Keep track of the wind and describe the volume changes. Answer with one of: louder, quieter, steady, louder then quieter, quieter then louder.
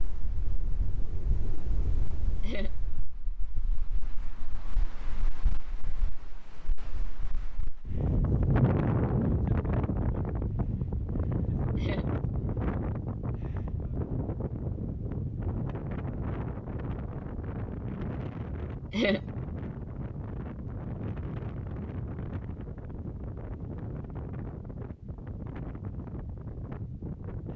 louder then quieter.